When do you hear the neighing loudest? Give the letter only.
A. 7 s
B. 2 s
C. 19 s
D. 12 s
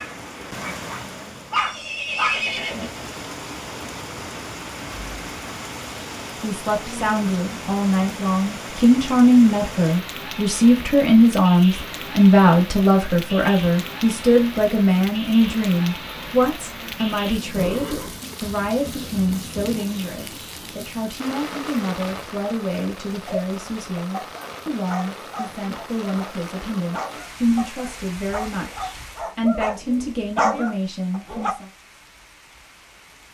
B.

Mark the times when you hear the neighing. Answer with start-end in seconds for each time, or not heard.
1.6-2.9, 17.6-18.2.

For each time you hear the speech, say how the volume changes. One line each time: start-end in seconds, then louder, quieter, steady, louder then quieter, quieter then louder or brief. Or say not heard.
6.4-31.7 quieter.